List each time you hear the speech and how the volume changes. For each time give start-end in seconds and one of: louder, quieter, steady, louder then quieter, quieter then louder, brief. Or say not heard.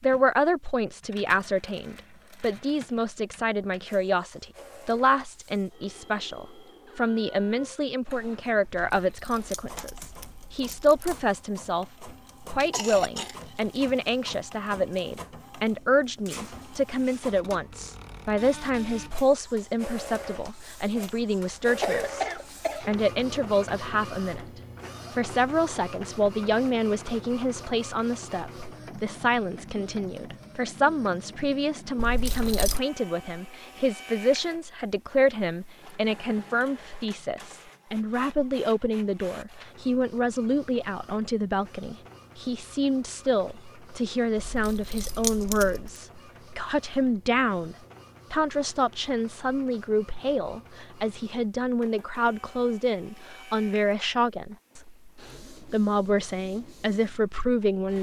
0.0-24.5 steady
25.1-57.9 steady.